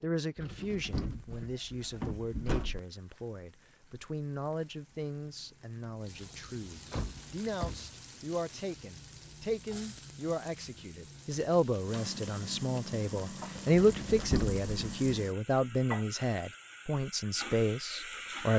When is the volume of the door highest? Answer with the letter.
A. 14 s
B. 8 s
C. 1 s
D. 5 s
A.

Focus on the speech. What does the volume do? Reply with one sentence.
The loudness of the speech goes up.